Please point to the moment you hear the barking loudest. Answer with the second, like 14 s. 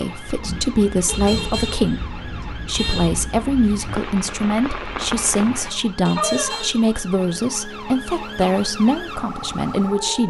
6 s.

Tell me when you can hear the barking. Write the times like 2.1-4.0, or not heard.
4.7-6.6.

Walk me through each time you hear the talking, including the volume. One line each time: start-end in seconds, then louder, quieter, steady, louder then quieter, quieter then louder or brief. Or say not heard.
0.0-10.2 steady.